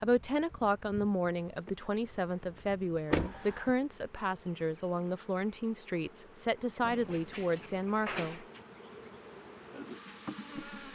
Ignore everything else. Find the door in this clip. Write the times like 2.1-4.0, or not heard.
3.1-3.8, 6.8-8.6.